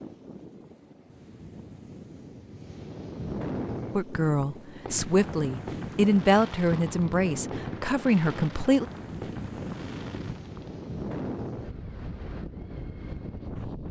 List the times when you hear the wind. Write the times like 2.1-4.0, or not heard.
0.0-13.8.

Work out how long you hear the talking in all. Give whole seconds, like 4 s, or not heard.
5 s.